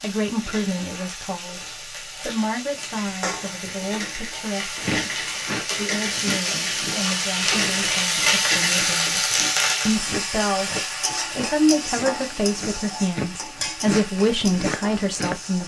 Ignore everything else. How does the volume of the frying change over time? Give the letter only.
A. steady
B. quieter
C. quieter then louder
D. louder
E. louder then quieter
E.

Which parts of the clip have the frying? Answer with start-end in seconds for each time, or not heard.
0.0-15.6.